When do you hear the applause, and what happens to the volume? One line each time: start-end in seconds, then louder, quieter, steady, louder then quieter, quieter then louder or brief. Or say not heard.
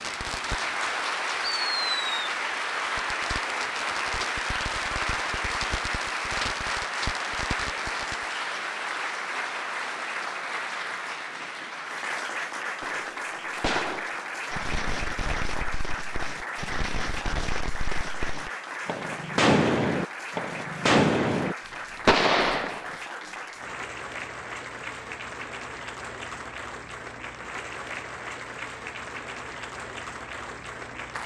0.0-31.2 quieter.